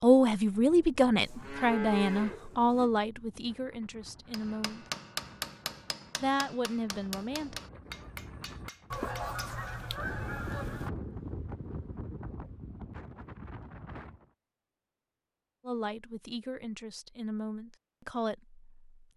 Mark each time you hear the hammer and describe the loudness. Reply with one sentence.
The hammer can be heard from 4.3 to 9.7 s, getting quieter.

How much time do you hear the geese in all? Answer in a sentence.
You can hear the geese for 2 seconds altogether.